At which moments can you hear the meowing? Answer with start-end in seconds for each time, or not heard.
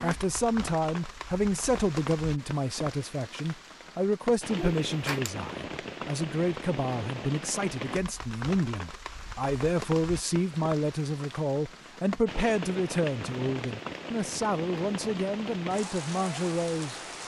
4.5-5.3.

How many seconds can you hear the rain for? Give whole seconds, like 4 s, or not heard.
17 s.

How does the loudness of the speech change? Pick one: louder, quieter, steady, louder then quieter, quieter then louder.
steady.